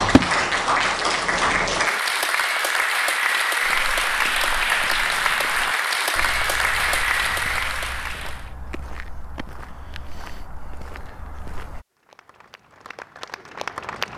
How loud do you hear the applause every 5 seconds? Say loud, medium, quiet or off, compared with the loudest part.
loud, loud, quiet.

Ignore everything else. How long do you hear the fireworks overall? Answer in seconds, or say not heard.
2 s.